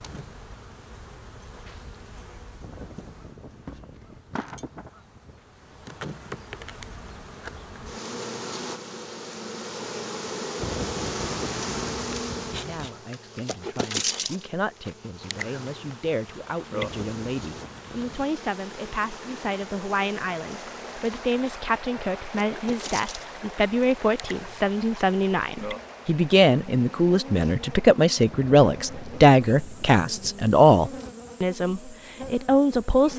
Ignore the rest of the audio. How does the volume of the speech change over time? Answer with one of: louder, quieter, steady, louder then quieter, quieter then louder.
louder.